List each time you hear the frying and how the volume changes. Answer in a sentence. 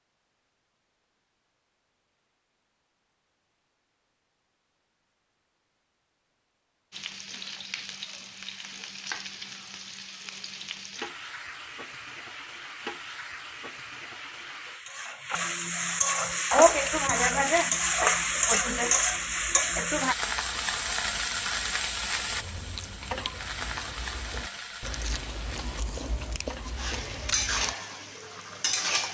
You can hear the frying from 6.9 to 29.0 s, getting louder then quieter.